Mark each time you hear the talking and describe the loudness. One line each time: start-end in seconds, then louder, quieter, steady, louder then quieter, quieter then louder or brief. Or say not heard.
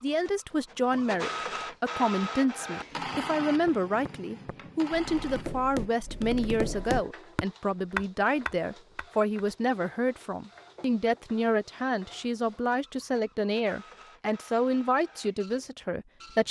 0.0-16.4 steady.